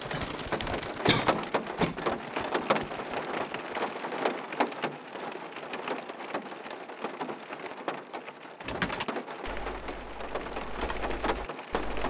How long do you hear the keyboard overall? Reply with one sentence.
You can hear the keyboard for 7 seconds altogether.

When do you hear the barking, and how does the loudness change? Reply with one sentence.
The barking can't be heard in this clip.